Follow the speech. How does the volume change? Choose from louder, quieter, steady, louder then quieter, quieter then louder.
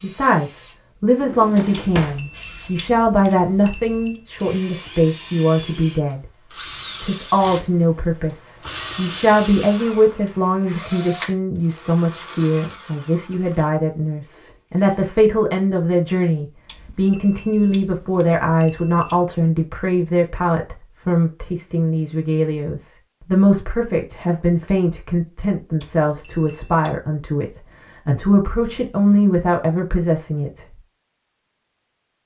steady.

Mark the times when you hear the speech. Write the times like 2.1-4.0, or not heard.
0.0-6.2, 7.0-30.8.